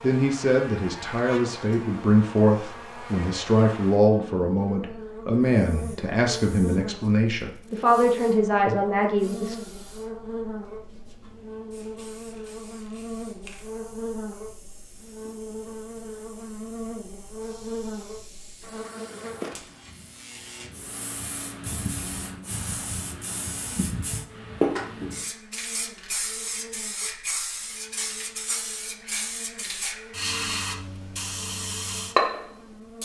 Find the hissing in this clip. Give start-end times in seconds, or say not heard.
5.6-33.0.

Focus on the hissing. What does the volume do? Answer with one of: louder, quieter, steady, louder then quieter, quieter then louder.
louder.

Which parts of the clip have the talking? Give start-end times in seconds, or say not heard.
0.0-9.6.